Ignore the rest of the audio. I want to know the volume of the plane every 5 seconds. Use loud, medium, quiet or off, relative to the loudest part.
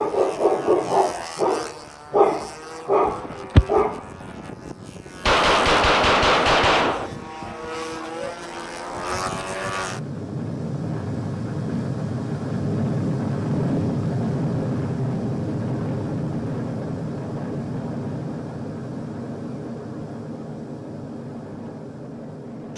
quiet, medium, loud, loud, medium.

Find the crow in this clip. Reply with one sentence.
The crow can't be heard in this clip.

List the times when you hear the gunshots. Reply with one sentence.
The gunshots can be heard from 5.2 to 7.1 s.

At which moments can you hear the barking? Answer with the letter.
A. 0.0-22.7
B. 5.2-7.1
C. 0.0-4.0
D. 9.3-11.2
C.